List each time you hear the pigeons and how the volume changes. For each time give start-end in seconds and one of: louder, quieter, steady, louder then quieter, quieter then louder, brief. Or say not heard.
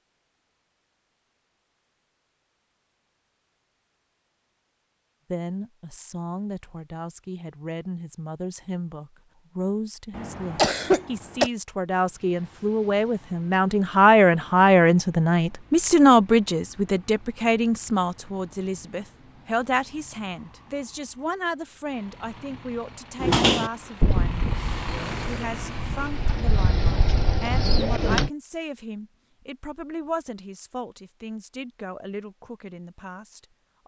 23.2-28.3 quieter then louder.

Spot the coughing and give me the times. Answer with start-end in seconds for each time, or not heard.
10.2-11.5.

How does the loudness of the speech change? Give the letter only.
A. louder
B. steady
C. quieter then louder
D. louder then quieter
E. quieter
D.